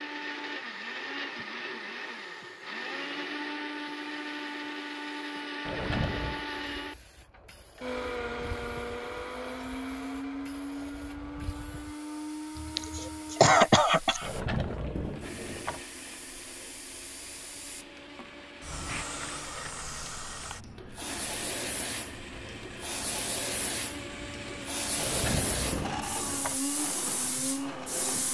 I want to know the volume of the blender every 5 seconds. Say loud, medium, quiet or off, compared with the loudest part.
loud, loud, loud, medium, medium, loud.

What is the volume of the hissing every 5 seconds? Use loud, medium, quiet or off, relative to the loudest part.
quiet, quiet, quiet, medium, loud, loud.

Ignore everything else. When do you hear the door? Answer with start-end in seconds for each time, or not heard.
5.7-6.4, 14.2-15.8, 24.9-26.6.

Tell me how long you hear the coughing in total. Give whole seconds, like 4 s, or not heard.
2 s.